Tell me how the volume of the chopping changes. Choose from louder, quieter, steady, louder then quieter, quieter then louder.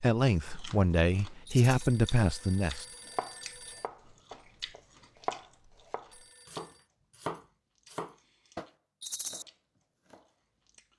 louder then quieter.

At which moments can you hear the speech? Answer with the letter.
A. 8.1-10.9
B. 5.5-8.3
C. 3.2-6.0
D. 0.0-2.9
D.